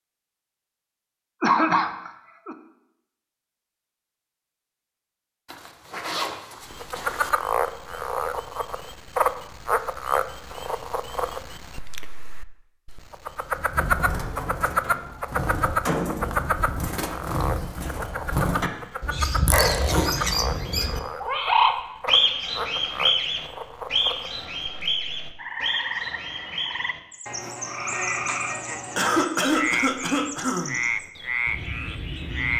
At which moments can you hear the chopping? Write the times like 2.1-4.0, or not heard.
not heard.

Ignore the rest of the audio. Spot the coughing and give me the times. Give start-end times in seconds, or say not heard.
1.4-2.5, 19.5-20.0, 28.9-30.8.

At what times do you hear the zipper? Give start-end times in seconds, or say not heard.
5.5-7.3, 19.4-20.1.